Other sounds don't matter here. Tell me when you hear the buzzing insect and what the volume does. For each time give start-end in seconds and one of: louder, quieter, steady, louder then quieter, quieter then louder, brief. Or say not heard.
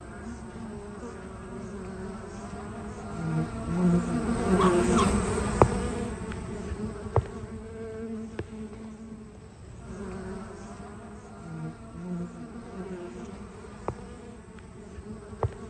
0.0-15.6 louder then quieter.